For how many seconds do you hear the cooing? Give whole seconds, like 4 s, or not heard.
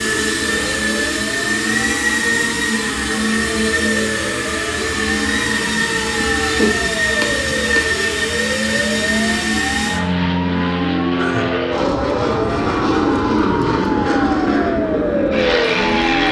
not heard.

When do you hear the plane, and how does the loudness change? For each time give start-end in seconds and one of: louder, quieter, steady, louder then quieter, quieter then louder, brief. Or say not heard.
0.0-16.2 steady.